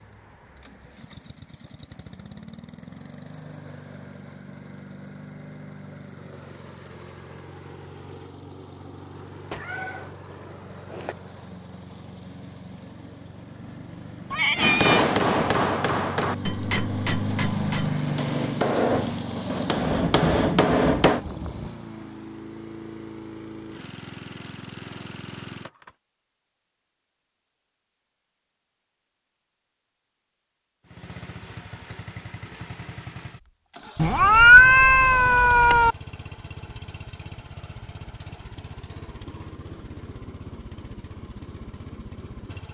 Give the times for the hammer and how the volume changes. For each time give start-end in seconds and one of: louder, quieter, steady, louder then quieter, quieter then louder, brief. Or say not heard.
14.6-21.2 quieter then louder.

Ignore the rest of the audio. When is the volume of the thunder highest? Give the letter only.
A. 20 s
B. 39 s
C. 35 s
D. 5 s
A.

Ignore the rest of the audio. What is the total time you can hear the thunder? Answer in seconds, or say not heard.
2 s.